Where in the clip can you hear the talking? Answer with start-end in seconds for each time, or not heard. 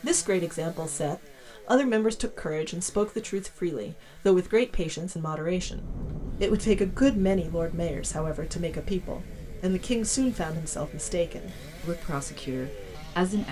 0.0-13.4.